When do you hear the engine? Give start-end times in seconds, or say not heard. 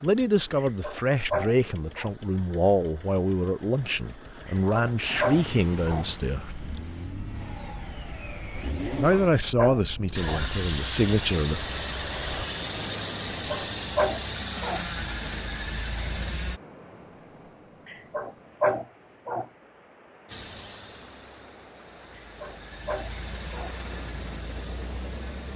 0.0-16.6, 20.2-25.5.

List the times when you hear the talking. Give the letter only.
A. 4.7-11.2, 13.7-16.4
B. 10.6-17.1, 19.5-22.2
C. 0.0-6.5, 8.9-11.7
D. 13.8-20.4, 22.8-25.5
C.